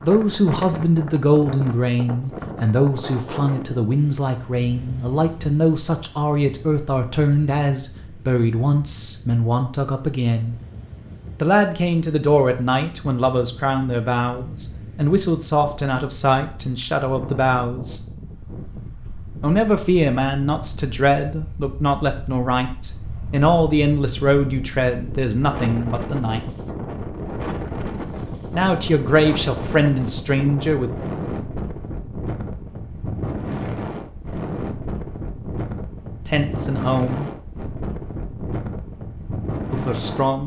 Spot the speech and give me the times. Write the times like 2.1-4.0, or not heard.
0.0-10.6, 11.4-18.0, 19.4-26.4, 28.5-30.9, 36.2-37.2, 39.7-40.4.